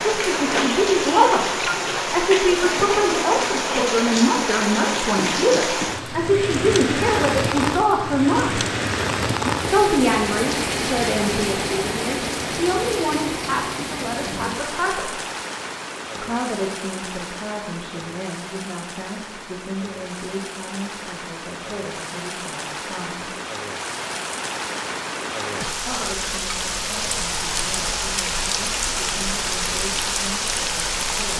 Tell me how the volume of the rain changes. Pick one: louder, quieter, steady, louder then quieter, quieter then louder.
quieter then louder.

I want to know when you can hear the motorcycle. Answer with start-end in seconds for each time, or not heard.
not heard.